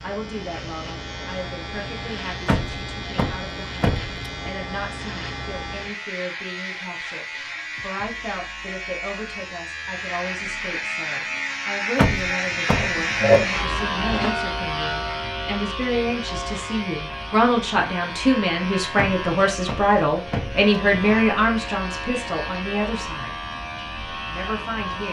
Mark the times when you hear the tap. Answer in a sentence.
You can hear the tap from 12.6 to 14.3 s.